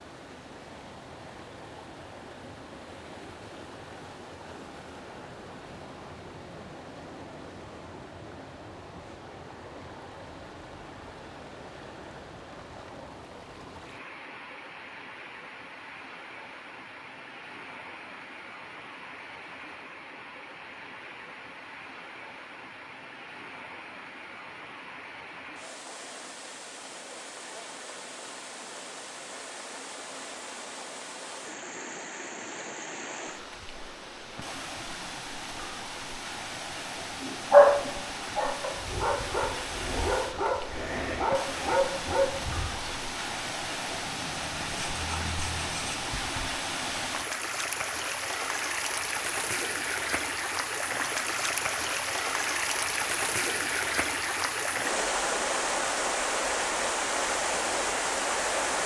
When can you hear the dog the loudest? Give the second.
38 s.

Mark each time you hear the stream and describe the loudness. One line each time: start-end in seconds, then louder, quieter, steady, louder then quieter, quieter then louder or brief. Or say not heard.
0.0-58.8 louder.